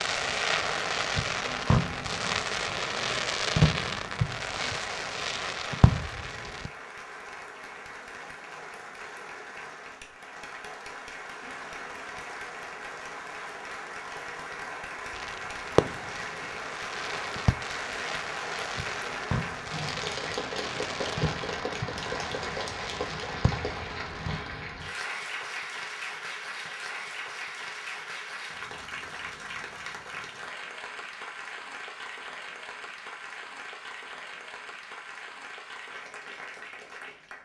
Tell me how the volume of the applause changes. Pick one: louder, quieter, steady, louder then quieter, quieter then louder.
louder then quieter.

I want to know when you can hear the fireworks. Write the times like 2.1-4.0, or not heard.
0.0-6.7, 15.1-24.4.